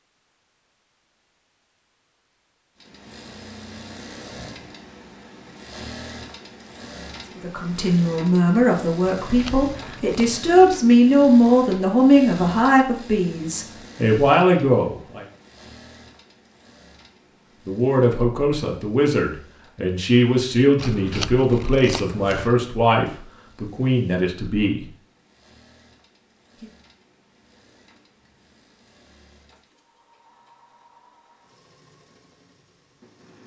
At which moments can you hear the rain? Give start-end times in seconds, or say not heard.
not heard.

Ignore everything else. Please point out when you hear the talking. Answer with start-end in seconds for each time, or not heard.
7.4-15.2, 17.6-24.9.